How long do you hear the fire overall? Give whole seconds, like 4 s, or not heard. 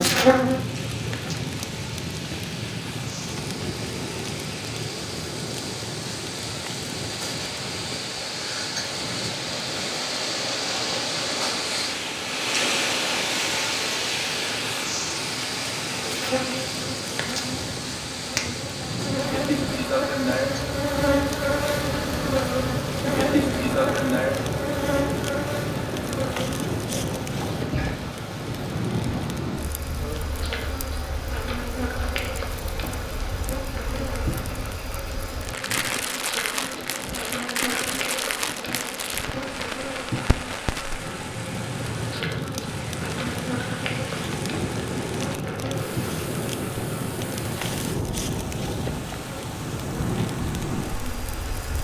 52 s.